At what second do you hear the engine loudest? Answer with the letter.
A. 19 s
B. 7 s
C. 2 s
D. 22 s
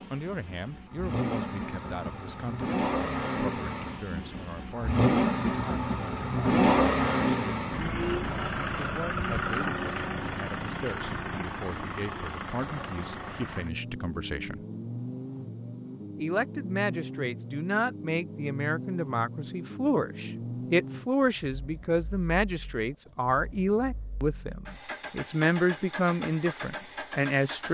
B.